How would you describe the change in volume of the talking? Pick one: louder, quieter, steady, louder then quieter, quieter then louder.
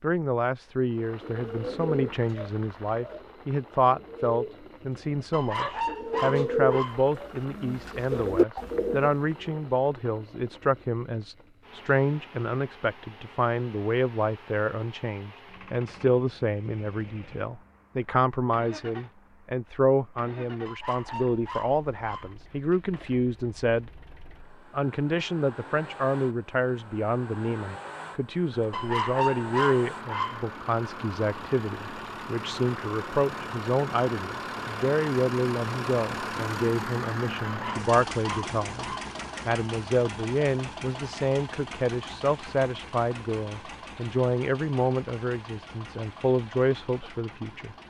steady.